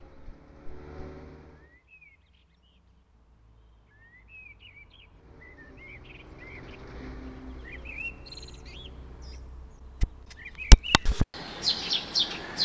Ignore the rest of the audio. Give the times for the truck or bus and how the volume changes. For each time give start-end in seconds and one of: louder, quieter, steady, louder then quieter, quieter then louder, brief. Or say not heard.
0.0-1.8 brief
5.0-9.6 louder then quieter.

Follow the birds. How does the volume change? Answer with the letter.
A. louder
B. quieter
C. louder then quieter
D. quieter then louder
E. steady
A.